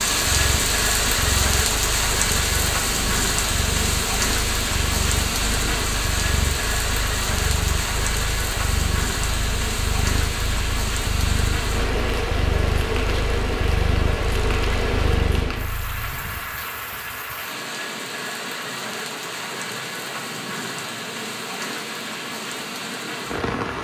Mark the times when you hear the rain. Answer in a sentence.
The rain can be heard from 0.0 to 23.7 s.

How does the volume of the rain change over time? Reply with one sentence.
The volume of the rain goes down.